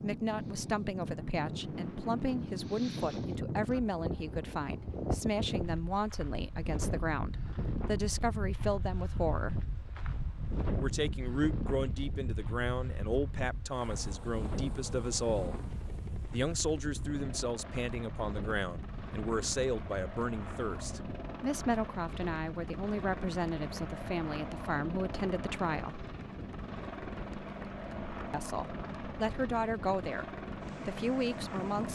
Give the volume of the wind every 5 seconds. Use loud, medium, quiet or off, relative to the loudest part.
loud, loud, loud, medium, medium, medium, medium.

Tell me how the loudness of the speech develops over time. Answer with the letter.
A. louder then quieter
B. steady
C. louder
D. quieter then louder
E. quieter
B.